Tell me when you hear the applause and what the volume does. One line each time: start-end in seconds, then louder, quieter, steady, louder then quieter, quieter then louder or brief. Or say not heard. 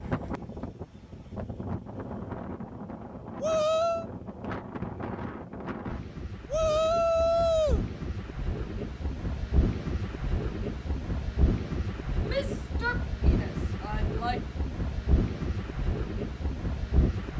not heard.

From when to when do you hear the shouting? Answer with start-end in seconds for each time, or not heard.
3.4-4.0, 6.5-7.8, 12.2-14.4.